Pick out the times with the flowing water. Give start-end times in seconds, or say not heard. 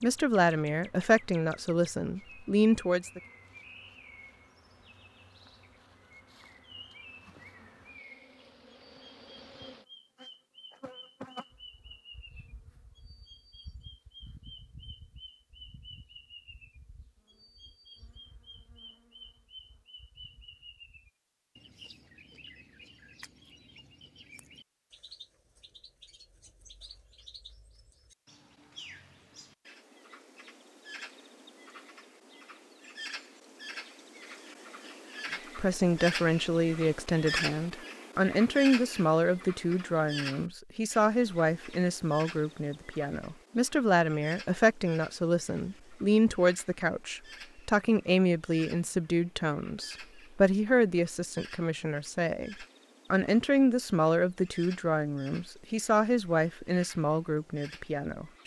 not heard.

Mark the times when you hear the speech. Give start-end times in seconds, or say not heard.
0.0-3.2, 35.5-58.4.